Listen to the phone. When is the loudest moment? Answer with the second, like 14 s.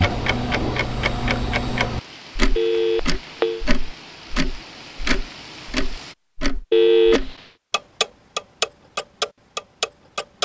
7 s.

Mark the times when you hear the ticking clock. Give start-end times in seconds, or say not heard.
0.0-10.4.